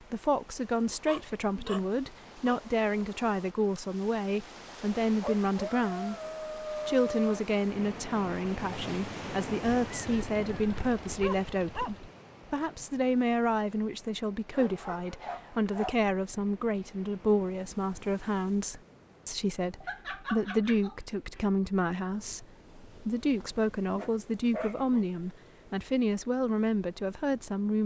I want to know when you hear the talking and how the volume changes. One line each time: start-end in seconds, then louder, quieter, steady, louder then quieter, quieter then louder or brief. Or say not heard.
0.1-27.8 steady.